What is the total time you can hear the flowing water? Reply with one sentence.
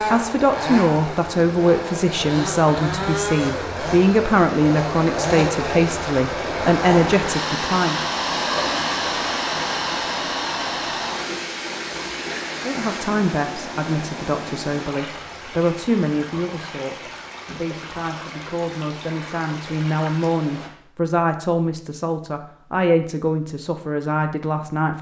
The flowing water can be heard for 21 seconds in total.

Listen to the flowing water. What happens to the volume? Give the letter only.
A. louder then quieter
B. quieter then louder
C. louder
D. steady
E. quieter
A.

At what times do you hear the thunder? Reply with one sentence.
You can't hear the thunder here.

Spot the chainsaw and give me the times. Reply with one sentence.
The chainsaw can be heard from 0.0 to 7.2 s.